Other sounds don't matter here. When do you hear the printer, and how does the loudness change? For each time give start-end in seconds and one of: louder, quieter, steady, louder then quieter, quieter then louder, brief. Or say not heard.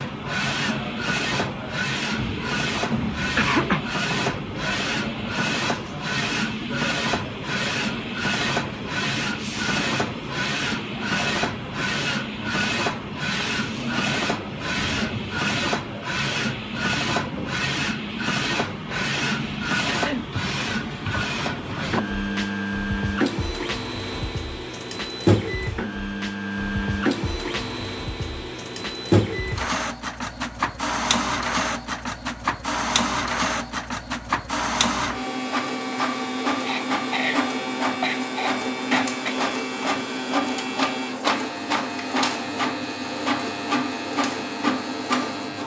0.0-45.6 steady.